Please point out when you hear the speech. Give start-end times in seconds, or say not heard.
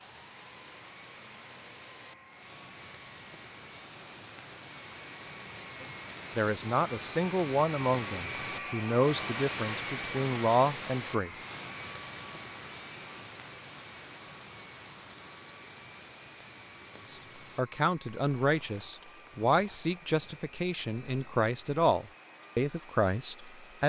5.8-11.4, 17.1-23.8.